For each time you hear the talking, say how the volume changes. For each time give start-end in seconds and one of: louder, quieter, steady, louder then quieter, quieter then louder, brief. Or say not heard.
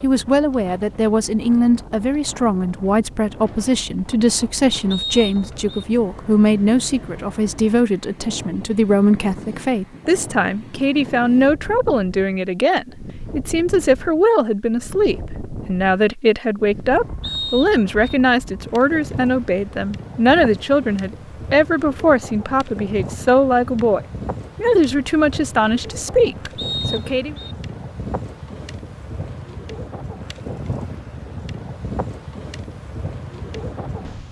0.0-27.4 steady.